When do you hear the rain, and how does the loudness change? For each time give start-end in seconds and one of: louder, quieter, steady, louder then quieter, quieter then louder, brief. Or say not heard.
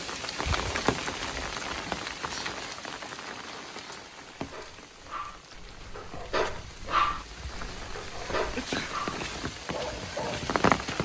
0.0-11.0 quieter then louder.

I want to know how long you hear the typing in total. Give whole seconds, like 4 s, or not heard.
not heard.